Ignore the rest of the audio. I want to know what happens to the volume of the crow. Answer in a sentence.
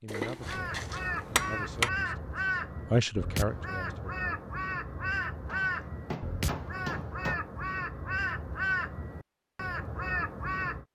The loudness of the crow stays about the same.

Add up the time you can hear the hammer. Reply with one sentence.
You can hear the hammer for 4 seconds altogether.